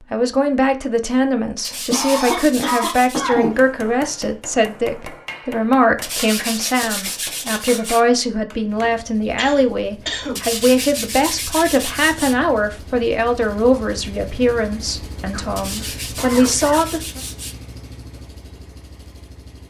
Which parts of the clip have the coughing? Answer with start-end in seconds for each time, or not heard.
1.9-3.6, 9.3-10.4, 15.3-16.9.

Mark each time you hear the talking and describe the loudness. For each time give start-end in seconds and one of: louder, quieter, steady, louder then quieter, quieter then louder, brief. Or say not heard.
0.1-17.2 steady.